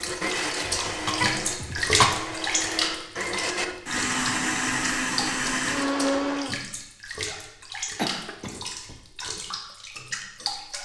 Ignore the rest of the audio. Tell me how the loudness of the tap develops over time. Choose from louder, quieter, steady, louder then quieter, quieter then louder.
quieter.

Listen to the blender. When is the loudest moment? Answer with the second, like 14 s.
6 s.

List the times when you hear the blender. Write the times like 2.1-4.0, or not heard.
0.0-6.5.